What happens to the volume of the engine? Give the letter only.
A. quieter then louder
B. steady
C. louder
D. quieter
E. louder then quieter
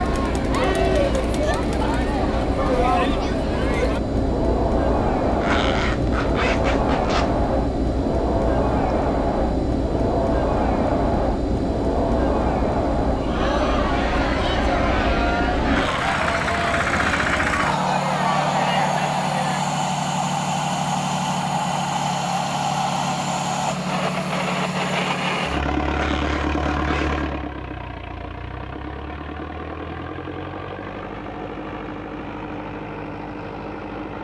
D.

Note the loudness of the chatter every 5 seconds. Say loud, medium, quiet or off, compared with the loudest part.
loud, loud, loud, loud, off, off, off.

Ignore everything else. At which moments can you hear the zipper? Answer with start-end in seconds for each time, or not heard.
5.4-7.3, 15.7-16.1, 25.9-27.2.